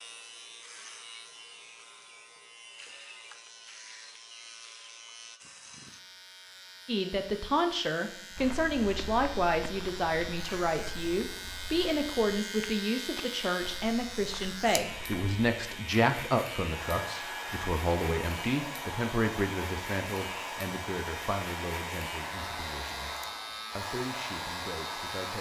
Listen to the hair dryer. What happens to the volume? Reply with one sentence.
The volume of the hair dryer stays about the same.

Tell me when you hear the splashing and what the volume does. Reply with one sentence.
The splashing can't be heard in this clip.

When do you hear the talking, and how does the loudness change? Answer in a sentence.
The talking can be heard from 6.8 to 23.1 s, getting quieter; and briefly from 23.8 to 25.3 s.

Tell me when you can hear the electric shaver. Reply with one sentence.
You can hear the electric shaver from 0.0 to 25.3 s.